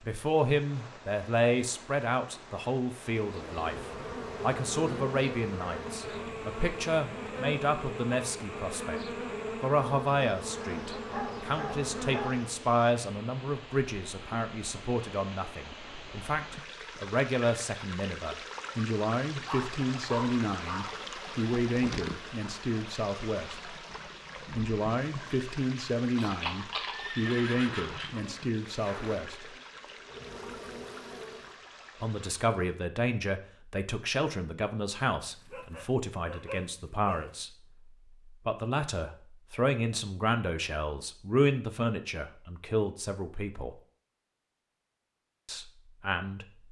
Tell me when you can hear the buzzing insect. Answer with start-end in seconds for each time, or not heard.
3.1-12.7, 28.1-31.6.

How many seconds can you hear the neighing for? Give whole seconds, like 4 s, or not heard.
2 s.